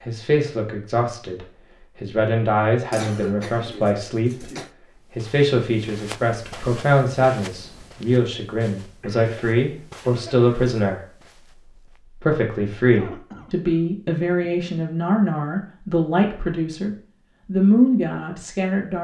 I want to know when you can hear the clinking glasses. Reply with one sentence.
The clinking glasses can't be heard in this clip.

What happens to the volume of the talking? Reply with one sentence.
The volume of the talking stays about the same.